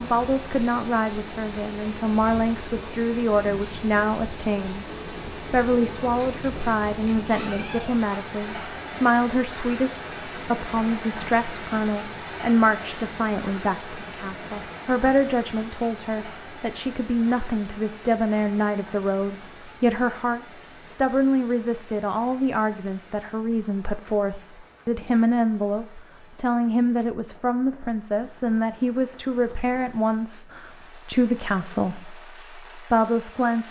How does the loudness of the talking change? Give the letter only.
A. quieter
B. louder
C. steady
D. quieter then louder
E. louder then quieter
C.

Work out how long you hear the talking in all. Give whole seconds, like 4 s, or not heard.
33 s.